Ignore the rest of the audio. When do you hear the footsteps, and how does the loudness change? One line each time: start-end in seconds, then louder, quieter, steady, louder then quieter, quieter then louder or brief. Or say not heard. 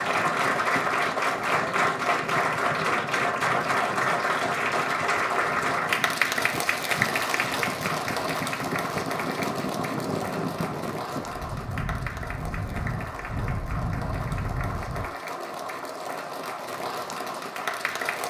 not heard.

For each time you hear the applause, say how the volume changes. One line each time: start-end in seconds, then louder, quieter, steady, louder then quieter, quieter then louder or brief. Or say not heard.
0.0-18.2 quieter.